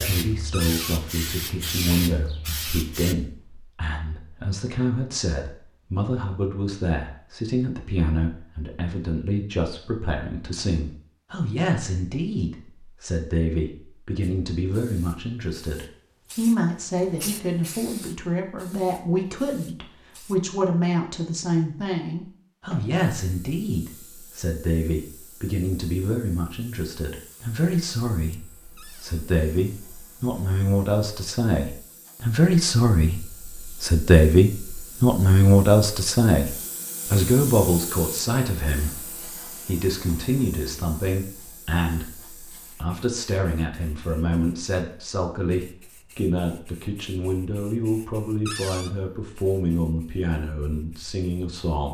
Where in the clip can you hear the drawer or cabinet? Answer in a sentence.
The drawer or cabinet can be heard from 0.5 to 0.9 s, from 28.8 to 29.2 s and from 48.5 to 48.9 s.